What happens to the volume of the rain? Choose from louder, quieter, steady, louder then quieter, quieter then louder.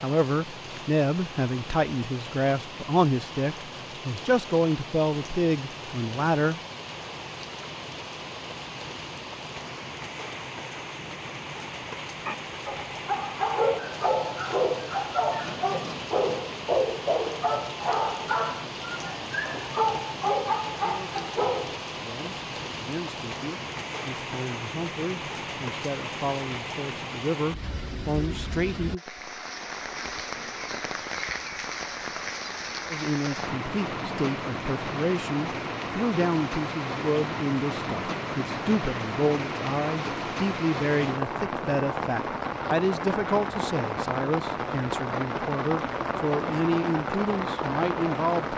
louder.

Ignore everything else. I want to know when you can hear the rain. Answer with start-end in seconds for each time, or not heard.
0.0-48.5.